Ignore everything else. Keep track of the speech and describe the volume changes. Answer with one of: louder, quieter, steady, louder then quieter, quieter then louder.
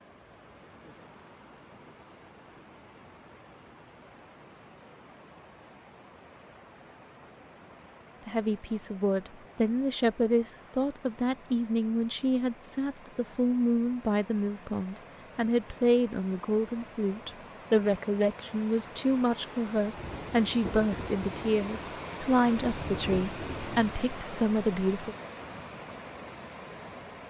steady.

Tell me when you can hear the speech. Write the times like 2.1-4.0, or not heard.
8.2-25.1.